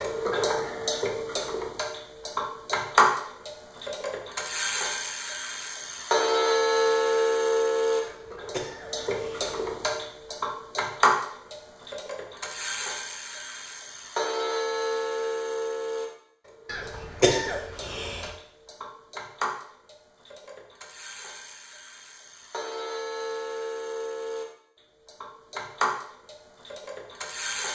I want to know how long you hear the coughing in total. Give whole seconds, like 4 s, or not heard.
3 s.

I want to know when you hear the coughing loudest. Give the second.
17 s.